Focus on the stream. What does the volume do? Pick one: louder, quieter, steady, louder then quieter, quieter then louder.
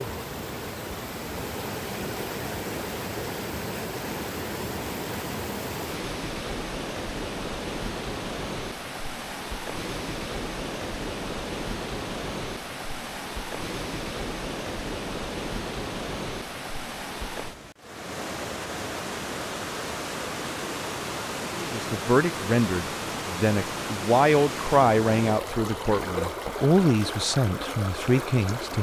steady.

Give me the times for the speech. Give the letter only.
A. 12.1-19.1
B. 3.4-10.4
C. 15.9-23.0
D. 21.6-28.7
D.